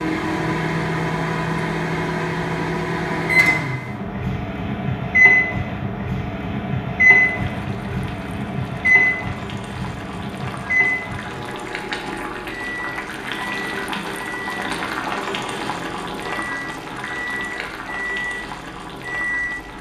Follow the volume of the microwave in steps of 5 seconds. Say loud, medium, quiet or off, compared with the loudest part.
loud, loud, medium, medium.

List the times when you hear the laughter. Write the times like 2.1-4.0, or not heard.
not heard.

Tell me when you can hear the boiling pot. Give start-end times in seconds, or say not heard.
7.2-19.7.